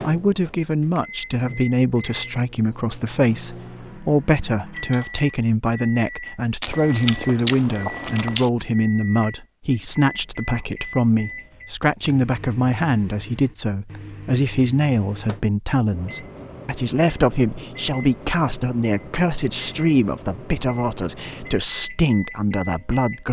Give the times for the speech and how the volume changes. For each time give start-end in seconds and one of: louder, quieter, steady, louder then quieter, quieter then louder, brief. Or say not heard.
0.0-23.2 steady.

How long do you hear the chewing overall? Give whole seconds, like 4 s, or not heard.
2 s.